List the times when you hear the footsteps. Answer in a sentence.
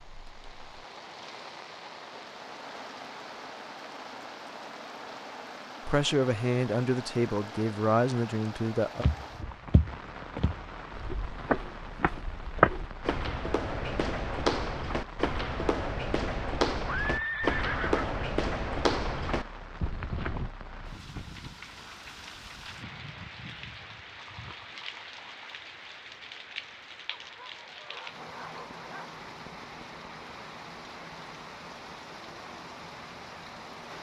You can hear the footsteps from 9.0 to 20.5 s.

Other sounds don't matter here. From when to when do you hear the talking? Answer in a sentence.
You can hear the talking from 5.8 to 9.1 s.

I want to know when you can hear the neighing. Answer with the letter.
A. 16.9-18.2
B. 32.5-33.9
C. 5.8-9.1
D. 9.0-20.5
A.